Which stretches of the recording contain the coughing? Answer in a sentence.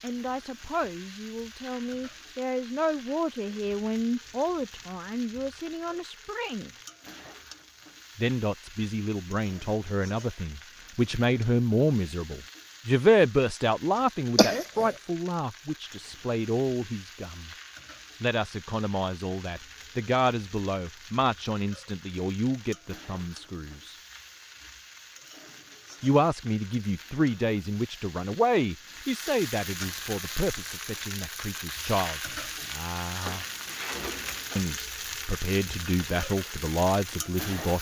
You can hear the coughing from 14.3 to 14.9 s.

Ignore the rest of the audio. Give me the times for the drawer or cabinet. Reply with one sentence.
The drawer or cabinet can be heard from 33.2 to 34.7 s.